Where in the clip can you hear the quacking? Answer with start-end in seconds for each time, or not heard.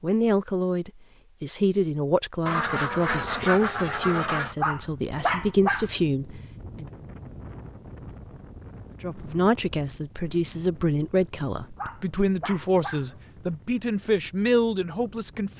2.5-4.5.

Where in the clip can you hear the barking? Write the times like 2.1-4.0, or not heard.
4.6-6.0, 11.8-13.2.